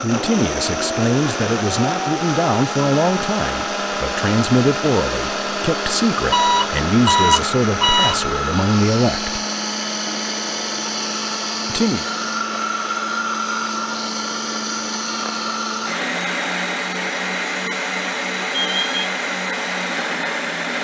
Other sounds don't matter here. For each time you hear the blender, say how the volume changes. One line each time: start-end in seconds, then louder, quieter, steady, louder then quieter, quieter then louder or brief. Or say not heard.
0.0-20.7 steady.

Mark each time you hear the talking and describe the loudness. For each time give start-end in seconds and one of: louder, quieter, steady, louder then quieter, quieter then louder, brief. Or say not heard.
0.0-9.4 steady
11.7-12.1 brief.